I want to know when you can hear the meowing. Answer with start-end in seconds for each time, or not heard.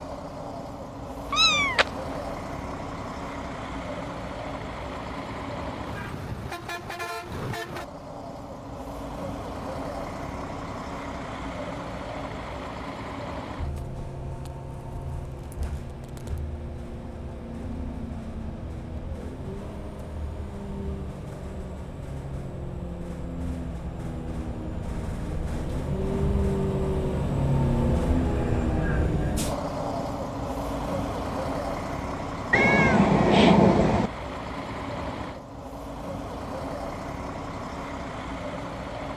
1.3-1.9, 32.5-34.1.